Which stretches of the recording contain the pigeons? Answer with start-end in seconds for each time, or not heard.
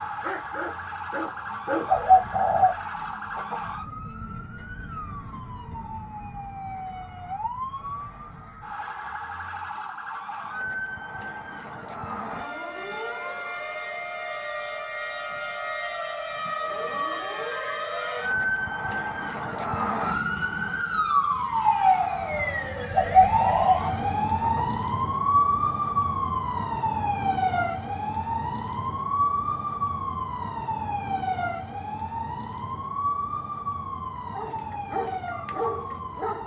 1.9-3.8, 22.9-24.8.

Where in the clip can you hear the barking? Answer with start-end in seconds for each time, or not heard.
0.0-2.6, 34.3-36.4.